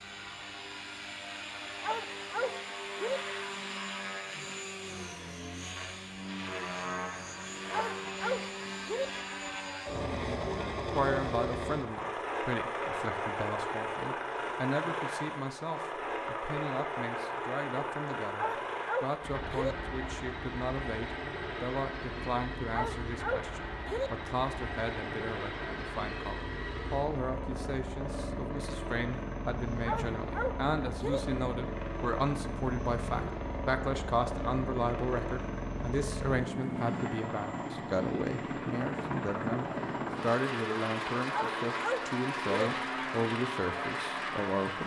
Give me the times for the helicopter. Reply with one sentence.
The helicopter can be heard from 0.0 to 44.8 s.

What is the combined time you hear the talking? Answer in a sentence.
The talking can be heard for 34 seconds in total.